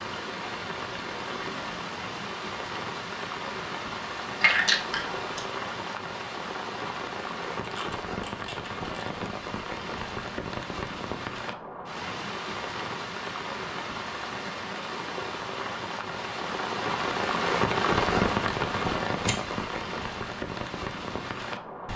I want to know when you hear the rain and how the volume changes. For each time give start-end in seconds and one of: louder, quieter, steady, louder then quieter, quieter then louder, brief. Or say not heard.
0.0-21.9 louder.